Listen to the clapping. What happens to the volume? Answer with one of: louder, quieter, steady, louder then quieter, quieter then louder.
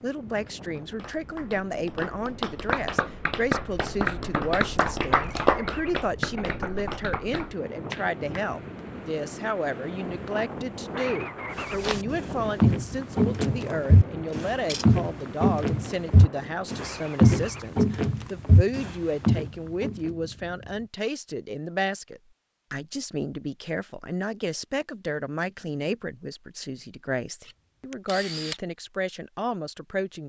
louder then quieter.